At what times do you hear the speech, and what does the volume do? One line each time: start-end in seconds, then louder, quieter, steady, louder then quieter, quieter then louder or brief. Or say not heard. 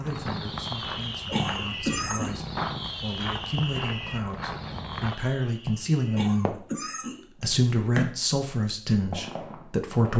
0.0-10.1 louder.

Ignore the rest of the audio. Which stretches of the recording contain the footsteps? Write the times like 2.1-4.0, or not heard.
0.0-5.2.